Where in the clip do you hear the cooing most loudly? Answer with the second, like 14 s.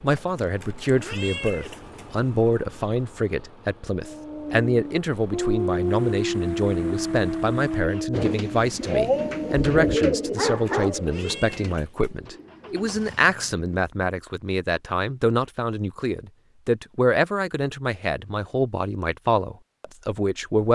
10 s.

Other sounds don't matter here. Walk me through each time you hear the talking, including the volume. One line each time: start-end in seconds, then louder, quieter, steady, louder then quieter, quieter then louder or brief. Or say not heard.
0.0-20.6 steady.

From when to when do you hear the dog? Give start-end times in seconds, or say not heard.
4.0-11.2.